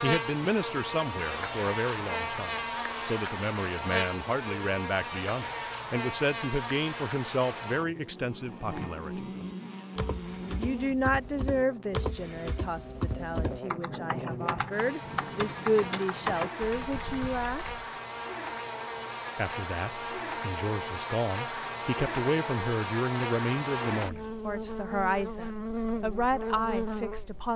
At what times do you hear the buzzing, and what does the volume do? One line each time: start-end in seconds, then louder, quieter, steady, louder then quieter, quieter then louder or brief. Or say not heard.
0.0-27.5 quieter then louder.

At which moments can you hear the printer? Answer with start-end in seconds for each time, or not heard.
not heard.